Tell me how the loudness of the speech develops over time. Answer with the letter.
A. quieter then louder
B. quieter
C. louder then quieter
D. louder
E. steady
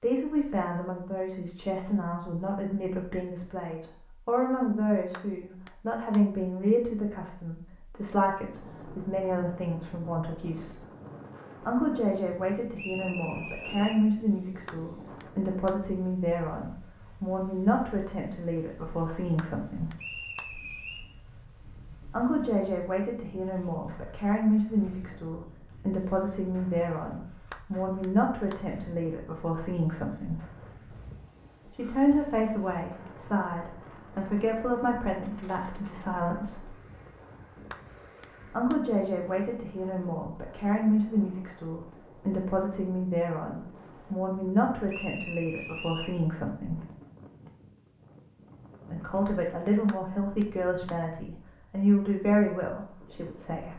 E.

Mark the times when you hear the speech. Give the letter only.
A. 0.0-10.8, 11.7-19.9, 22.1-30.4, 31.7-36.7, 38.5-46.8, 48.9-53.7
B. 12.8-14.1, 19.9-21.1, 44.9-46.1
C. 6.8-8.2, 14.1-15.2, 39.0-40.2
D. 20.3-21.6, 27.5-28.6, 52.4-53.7
A.